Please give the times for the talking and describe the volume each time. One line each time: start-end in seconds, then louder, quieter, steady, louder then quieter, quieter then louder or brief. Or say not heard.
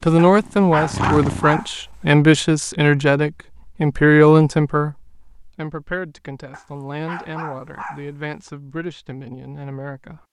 0.0-10.2 quieter.